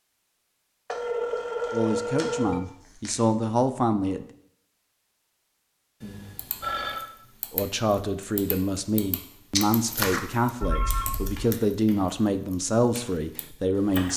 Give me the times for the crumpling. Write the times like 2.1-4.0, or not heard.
0.9-3.1, 9.6-10.2.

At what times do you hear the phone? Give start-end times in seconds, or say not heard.
0.8-2.6, 6.0-7.0, 10.6-11.4.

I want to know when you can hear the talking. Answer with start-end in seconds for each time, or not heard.
1.7-4.2, 7.5-14.1.